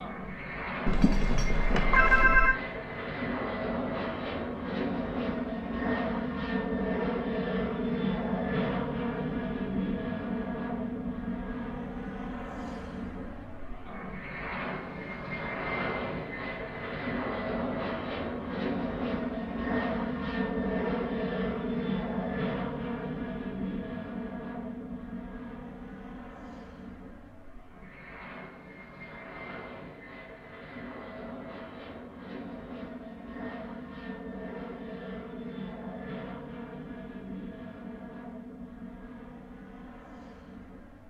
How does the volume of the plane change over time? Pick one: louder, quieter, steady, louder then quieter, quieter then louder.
quieter.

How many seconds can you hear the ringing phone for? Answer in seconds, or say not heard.
2 s.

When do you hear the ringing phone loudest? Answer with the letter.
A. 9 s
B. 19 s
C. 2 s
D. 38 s
C.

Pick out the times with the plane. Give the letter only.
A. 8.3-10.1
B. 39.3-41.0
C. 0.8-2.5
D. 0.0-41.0
D.